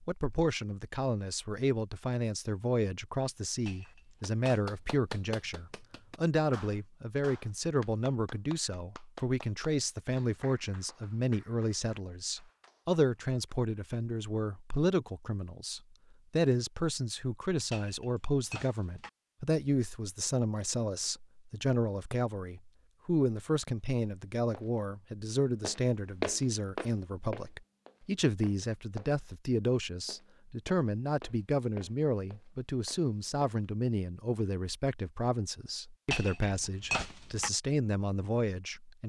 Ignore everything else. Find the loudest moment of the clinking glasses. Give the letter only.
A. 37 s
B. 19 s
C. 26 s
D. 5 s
A.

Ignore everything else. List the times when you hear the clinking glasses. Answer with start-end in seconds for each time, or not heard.
3.6-4.6, 17.7-19.1, 36.1-37.5.